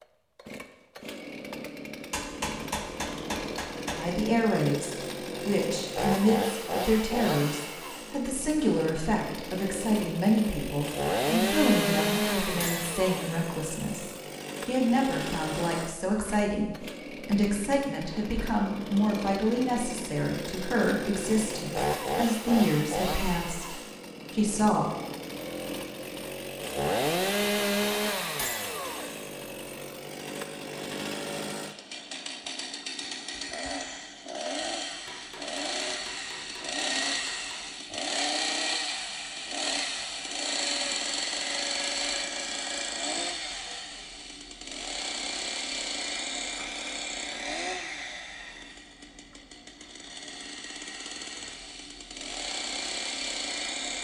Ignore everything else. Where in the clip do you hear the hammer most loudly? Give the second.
3 s.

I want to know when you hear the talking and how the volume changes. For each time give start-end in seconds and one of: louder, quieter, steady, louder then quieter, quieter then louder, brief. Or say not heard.
4.0-24.9 steady.